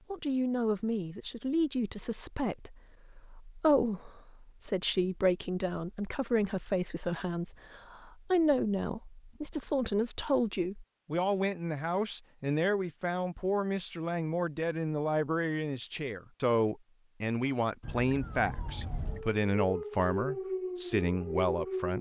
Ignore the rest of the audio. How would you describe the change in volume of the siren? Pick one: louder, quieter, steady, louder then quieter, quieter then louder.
louder.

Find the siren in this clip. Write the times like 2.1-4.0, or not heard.
17.8-21.9.